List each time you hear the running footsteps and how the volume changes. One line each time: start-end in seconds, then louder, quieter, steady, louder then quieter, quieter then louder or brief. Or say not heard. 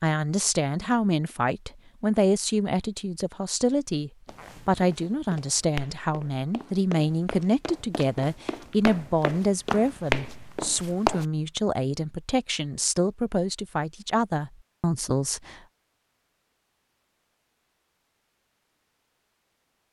4.2-11.2 louder.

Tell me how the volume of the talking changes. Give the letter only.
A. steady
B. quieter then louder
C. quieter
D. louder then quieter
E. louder
A.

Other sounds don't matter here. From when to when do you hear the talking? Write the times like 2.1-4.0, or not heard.
0.0-15.6.